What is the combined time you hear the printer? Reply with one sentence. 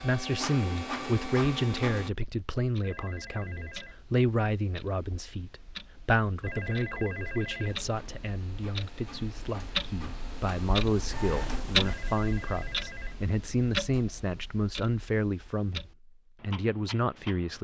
You can hear the printer for 6 seconds altogether.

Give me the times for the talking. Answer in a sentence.
You can hear the talking from 0.0 to 17.6 s.